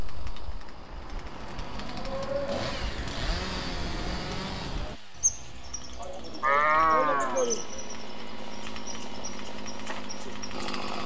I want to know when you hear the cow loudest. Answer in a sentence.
The loudest moment of the cow is at 7 seconds.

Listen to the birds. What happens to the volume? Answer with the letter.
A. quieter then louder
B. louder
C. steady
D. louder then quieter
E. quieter
D.